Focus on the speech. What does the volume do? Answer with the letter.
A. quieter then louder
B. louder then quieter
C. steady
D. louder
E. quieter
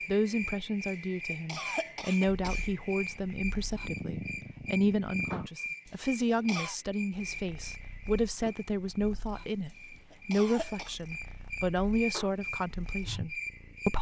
C.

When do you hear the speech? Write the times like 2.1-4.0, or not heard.
0.1-13.9.